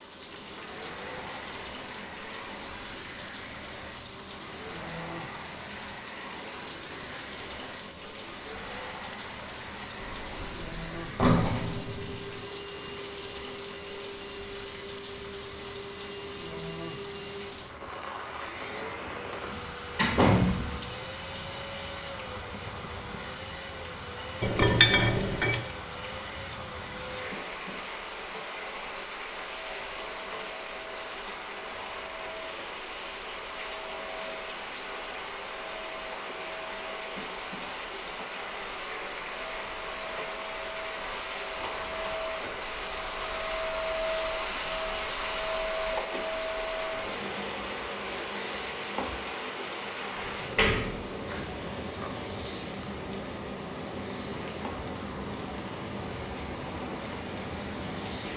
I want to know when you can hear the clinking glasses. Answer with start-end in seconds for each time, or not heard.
24.4-25.6.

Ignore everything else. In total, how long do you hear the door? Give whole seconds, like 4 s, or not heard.
5 s.